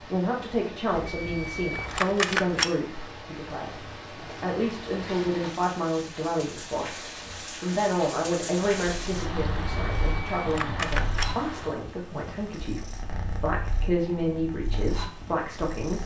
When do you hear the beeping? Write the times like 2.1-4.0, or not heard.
0.9-2.8, 9.8-11.3.